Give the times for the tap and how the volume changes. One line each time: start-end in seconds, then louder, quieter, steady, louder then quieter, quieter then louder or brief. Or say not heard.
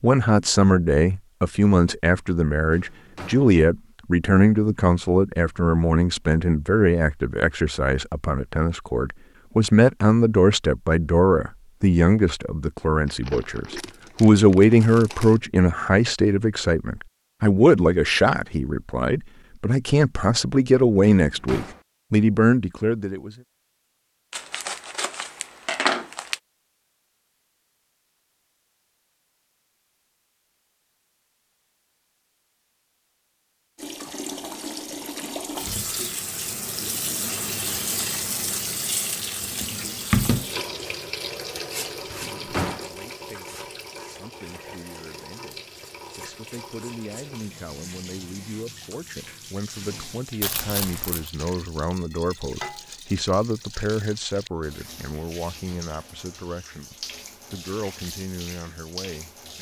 33.8-59.5 quieter.